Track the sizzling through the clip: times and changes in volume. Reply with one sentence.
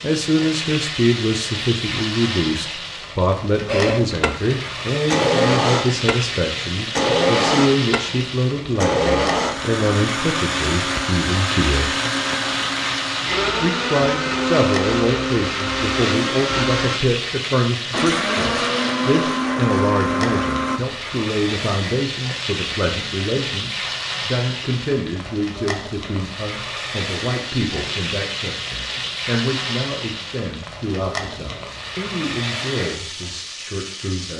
You can hear the sizzling from 0.0 to 34.3 s, at a steady volume.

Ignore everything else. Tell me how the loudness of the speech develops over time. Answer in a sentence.
The volume of the speech goes down.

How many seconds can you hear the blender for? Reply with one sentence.
The blender can be heard for 17 seconds in total.